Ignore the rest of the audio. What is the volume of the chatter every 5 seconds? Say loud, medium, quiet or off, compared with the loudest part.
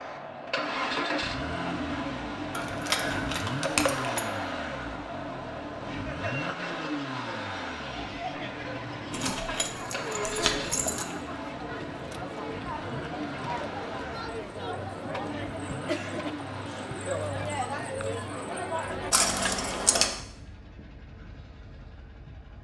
medium, medium, loud, loud, off.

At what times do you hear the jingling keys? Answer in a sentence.
You can hear the jingling keys from 2.5 to 4.2 s, from 9.1 to 11.1 s and from 19.1 to 20.2 s.